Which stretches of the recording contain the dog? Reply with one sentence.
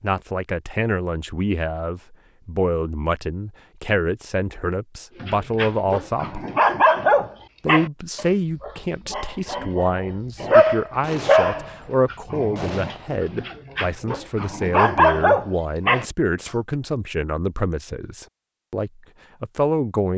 You can hear the dog from 5.2 to 16.1 s.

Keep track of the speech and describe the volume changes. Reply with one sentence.
The volume of the speech stays about the same.